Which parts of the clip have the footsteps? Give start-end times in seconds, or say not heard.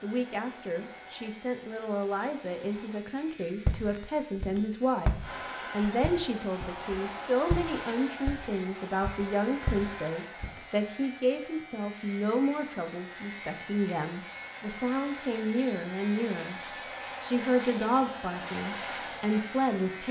3.6-10.6.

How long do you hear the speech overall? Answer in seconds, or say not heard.
20 s.